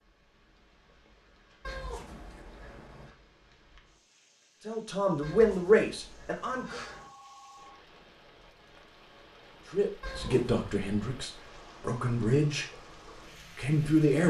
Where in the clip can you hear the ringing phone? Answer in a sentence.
You can hear the ringing phone from 6.7 to 7.8 s.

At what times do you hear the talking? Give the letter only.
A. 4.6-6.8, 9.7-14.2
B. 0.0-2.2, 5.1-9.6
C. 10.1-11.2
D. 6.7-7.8
A.